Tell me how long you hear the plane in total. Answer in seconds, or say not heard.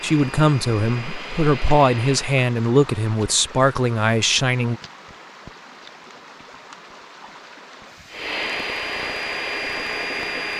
5 s.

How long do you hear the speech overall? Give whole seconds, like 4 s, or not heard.
5 s.